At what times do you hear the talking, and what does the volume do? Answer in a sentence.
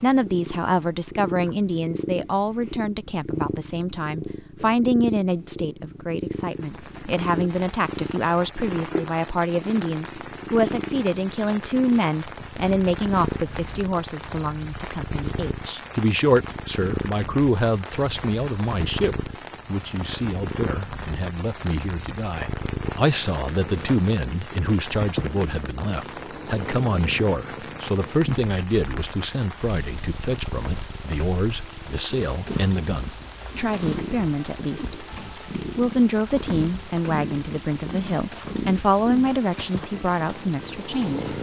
The talking can be heard from 0.0 to 41.3 s, at a steady volume.